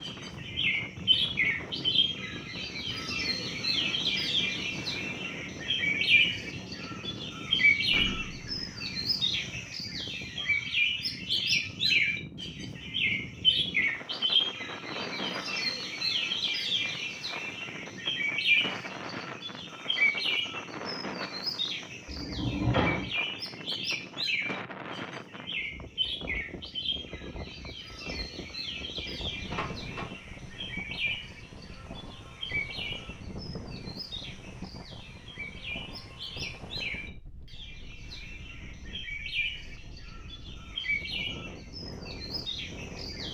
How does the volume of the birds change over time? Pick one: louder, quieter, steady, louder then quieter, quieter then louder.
quieter.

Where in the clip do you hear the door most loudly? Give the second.
23 s.